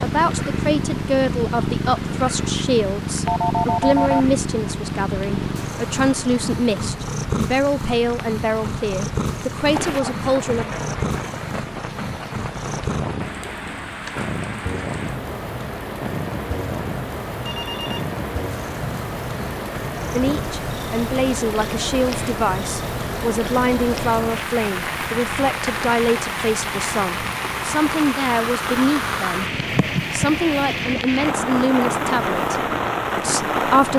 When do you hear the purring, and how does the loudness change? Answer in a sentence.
You can hear the purring from 0.0 to 33.9 s, getting quieter.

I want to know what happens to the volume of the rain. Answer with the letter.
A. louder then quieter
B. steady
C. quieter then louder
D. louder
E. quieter
D.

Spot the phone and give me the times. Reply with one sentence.
You can hear the phone from 3.2 to 4.2 s and from 17.4 to 18.1 s.